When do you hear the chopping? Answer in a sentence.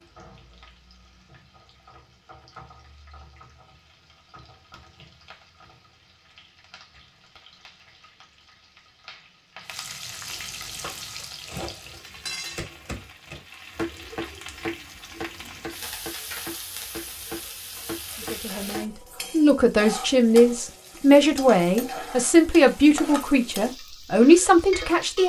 The chopping can be heard from 10.8 to 19.0 s.